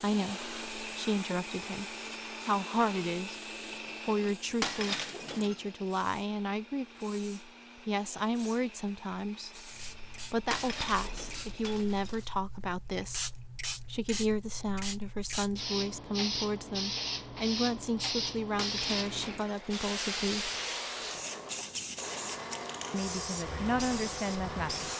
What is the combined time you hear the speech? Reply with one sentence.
You can hear the speech for 21 seconds altogether.